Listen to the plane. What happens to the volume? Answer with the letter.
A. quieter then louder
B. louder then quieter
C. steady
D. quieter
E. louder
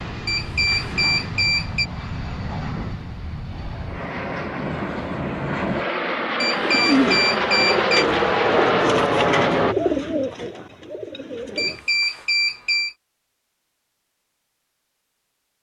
E.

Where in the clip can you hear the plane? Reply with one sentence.
You can hear the plane from 0.0 to 9.8 s.